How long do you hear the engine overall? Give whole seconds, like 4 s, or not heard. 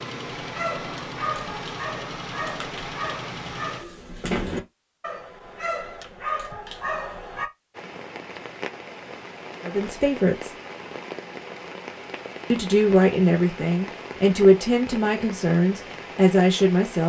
4 s.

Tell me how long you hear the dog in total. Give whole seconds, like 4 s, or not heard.
7 s.